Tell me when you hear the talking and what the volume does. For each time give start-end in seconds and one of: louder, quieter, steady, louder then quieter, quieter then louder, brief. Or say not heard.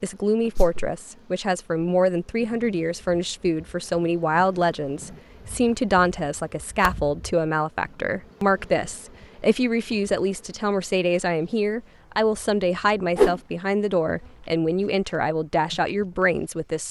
0.0-16.8 steady.